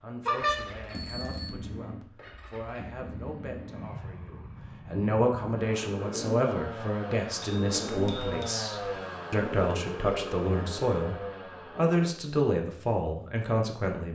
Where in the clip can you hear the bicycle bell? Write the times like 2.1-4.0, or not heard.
0.2-1.6, 7.4-8.6.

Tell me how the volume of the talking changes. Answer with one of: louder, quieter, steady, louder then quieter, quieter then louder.
louder.